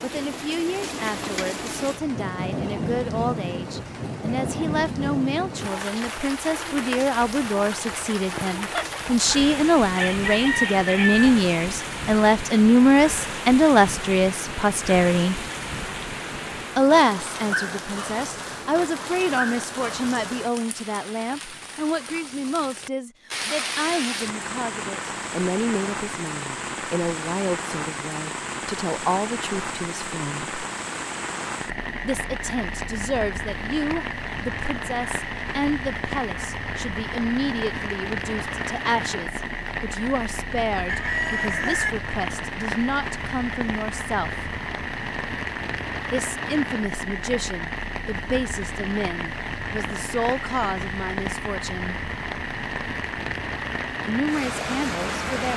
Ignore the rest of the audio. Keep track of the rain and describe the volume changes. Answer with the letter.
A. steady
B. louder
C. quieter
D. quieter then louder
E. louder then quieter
A.